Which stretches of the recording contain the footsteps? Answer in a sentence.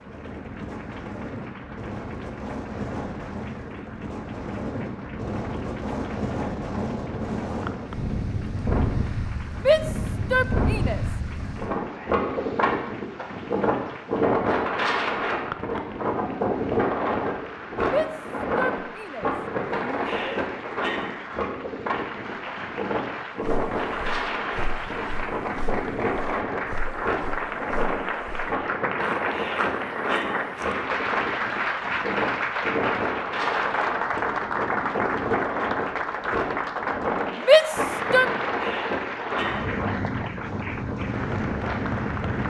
The footsteps can be heard from 23.4 to 30.9 s.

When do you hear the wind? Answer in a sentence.
The wind can be heard from 0.0 to 42.4 s.